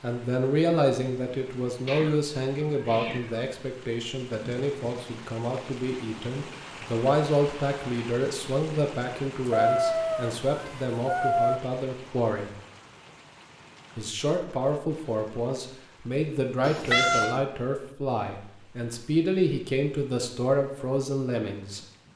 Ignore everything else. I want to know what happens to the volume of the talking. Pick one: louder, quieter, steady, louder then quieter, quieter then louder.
steady.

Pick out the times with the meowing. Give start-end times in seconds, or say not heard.
1.9-3.5, 9.4-11.6, 16.6-17.4.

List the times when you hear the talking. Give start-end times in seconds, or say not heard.
0.0-12.5, 13.9-21.8.